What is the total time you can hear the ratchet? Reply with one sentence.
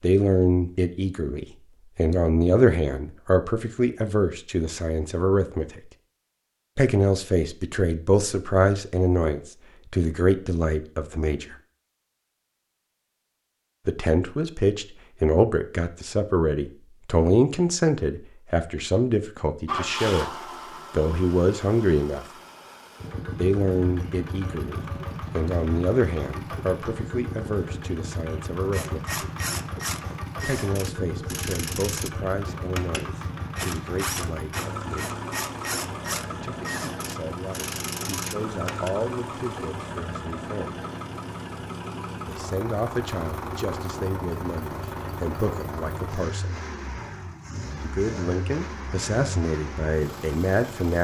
You can hear the ratchet for 10 seconds altogether.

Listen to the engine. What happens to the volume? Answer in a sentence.
The volume of the engine stays about the same.